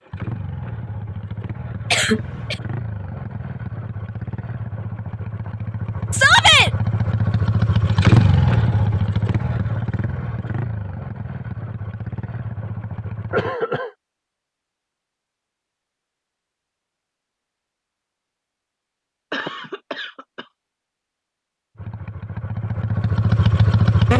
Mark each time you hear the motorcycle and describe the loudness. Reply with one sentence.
You can hear the motorcycle from 0.0 to 13.6 s, getting louder then quieter; and briefly from 21.8 to 24.1 s.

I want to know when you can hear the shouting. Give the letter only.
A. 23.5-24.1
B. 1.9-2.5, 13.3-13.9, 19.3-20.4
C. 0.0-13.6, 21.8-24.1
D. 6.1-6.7
D.